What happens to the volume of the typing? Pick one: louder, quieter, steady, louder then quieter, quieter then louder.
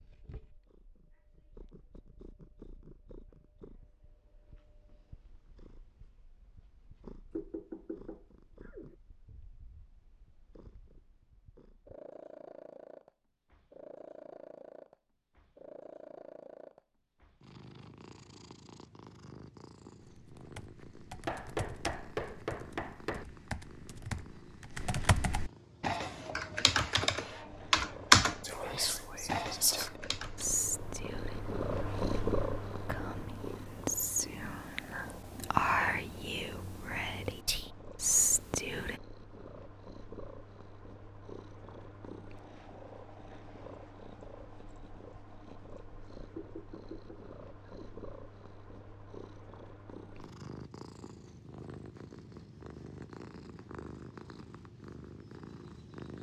louder.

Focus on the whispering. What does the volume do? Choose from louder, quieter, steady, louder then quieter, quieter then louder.
quieter then louder.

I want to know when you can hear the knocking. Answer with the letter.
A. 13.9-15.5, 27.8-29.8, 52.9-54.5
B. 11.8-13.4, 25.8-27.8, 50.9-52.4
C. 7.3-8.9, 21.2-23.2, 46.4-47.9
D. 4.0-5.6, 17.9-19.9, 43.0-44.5
C.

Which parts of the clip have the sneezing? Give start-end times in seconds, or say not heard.
not heard.